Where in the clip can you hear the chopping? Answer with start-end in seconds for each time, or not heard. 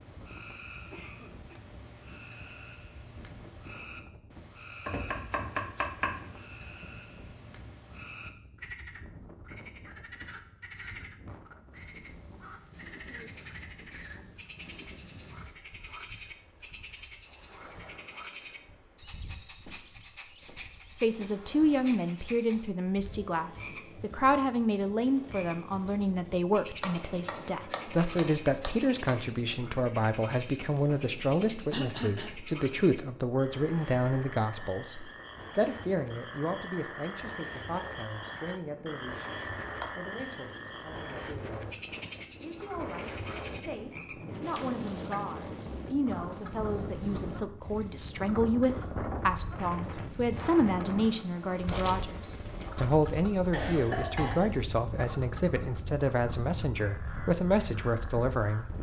4.8-6.3, 26.8-29.2, 39.8-40.6.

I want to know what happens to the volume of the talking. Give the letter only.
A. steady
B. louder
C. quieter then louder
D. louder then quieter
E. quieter
C.